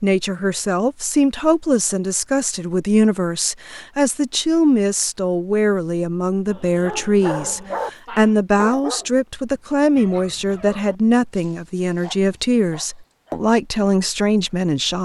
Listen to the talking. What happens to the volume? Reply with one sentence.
The volume of the talking stays about the same.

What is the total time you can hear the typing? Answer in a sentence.
The typing can't be heard in this clip.